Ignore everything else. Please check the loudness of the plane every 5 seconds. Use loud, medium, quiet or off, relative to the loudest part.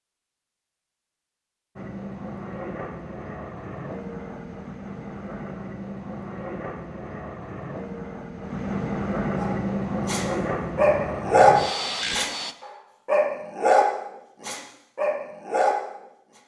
medium, loud, loud, off.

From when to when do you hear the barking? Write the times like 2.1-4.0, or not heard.
9.3-15.8.